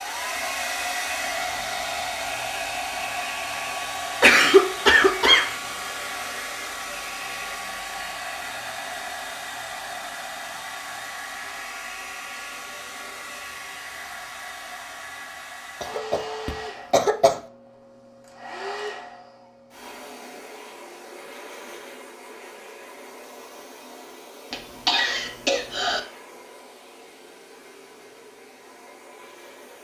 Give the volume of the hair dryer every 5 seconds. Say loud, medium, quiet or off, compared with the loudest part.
loud, loud, medium, medium, quiet, quiet.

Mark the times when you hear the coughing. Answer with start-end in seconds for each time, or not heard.
4.2-5.5, 15.8-17.4, 24.5-26.0.